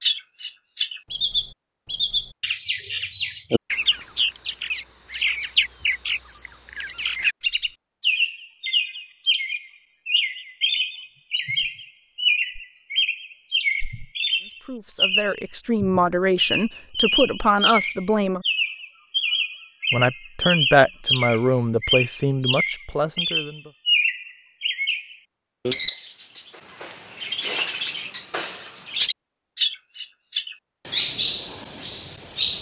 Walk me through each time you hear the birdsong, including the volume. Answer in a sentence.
The birdsong can be heard from 0.0 to 32.5 s, at a steady volume.